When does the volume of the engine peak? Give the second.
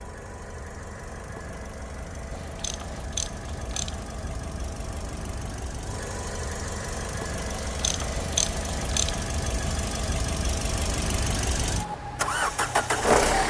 13 s.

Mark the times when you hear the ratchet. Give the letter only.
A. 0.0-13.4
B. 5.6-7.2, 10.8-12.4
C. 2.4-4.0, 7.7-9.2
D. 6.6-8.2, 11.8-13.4
C.